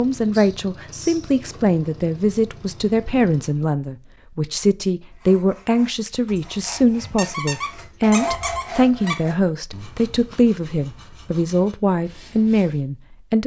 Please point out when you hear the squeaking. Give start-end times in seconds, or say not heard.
0.3-1.4, 7.2-9.2.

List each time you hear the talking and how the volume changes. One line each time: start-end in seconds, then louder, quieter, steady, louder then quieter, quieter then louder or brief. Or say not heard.
0.0-13.4 steady.